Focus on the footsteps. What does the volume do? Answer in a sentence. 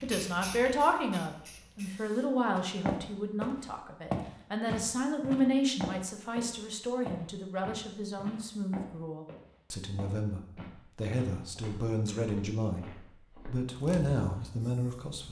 The volume of the footsteps goes down.